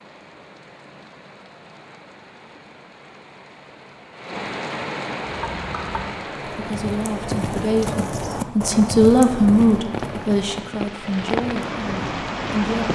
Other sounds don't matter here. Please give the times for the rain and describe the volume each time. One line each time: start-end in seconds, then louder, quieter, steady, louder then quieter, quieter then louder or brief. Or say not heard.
0.0-12.9 louder.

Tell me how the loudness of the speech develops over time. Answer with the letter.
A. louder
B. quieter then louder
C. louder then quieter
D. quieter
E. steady
C.